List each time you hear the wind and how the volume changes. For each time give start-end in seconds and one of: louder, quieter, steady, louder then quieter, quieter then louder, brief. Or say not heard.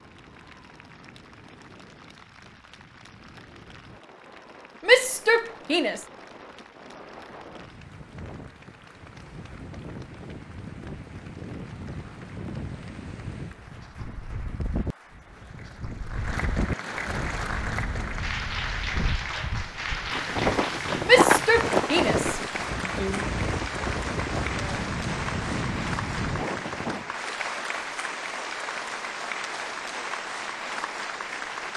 0.0-27.1 louder.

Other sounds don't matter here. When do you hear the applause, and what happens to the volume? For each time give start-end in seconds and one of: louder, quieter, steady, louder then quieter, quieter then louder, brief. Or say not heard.
0.0-31.7 louder.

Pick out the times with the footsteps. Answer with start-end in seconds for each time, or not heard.
20.1-22.1.